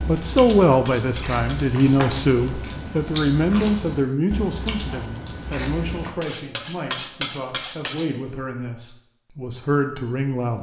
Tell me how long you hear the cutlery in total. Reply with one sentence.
You can hear the cutlery for 4 seconds altogether.